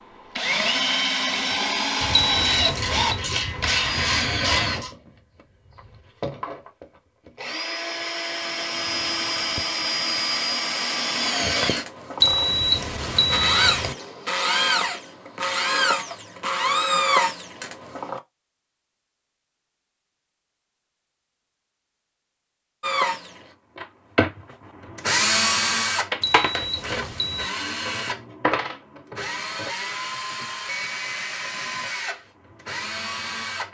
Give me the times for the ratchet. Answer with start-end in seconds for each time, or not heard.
2.0-5.0.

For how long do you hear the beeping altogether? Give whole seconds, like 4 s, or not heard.
4 s.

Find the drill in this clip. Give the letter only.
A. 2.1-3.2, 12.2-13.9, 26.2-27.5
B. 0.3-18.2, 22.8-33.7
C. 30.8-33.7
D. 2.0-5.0
B.